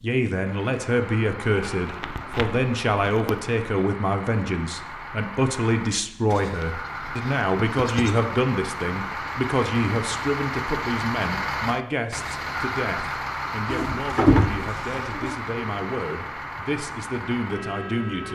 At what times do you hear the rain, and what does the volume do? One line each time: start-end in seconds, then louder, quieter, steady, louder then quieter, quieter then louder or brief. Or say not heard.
not heard.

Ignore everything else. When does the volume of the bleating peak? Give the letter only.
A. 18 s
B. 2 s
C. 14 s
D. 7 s
C.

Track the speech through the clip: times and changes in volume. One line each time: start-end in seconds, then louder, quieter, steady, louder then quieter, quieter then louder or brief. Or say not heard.
0.0-18.3 quieter.